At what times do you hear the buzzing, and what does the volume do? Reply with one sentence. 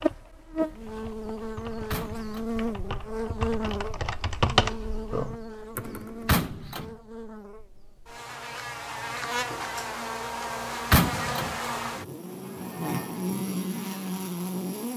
You can hear the buzzing from 0.0 to 14.9 s, getting quieter then louder.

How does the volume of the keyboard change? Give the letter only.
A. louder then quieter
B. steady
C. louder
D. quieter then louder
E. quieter
A.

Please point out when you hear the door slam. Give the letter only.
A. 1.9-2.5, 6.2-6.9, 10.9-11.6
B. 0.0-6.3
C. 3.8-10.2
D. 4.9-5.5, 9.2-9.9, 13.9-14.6
A.